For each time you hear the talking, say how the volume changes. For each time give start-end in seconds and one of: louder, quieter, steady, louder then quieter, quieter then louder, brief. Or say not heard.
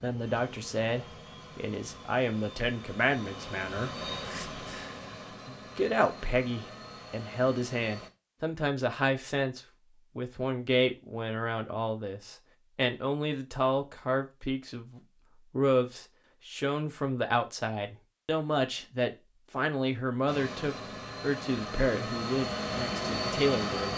0.0-23.9 steady.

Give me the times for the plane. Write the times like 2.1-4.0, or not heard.
0.0-8.1, 20.2-23.9.